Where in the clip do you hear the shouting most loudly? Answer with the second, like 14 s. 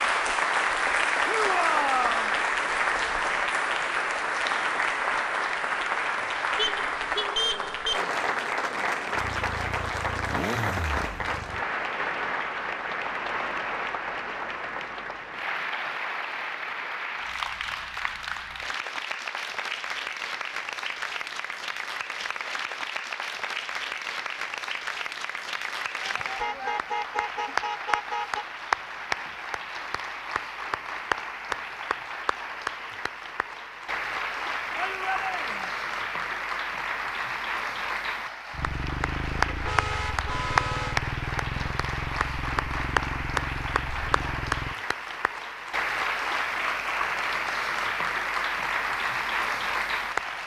2 s.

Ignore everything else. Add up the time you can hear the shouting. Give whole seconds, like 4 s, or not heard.
3 s.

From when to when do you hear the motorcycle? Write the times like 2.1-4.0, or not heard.
9.1-11.7, 38.5-44.8.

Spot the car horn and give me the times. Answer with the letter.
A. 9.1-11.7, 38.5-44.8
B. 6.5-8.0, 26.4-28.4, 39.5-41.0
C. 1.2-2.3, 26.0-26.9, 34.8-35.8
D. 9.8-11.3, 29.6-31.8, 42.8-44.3
B.